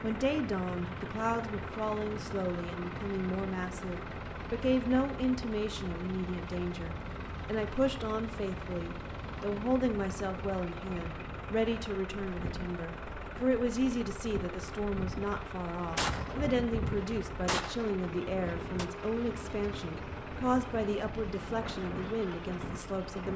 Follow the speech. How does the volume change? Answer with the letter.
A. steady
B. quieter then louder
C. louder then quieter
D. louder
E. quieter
A.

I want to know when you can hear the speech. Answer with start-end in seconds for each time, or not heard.
0.0-23.3.